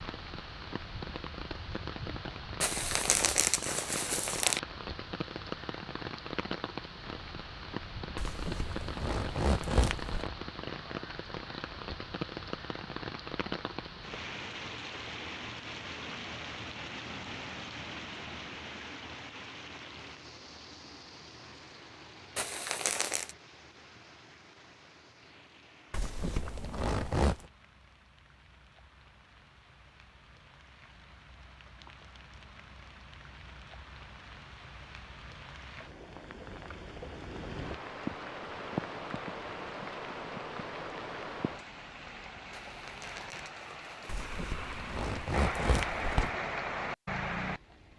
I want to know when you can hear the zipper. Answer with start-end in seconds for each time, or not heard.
8.2-10.3, 25.9-27.4, 44.0-46.3.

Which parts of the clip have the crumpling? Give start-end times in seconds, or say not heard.
2.6-4.6, 22.4-23.4, 42.5-44.2.